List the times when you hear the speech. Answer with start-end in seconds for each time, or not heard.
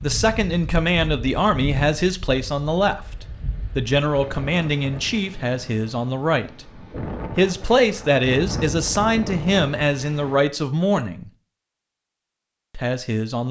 0.0-11.3, 12.8-13.4.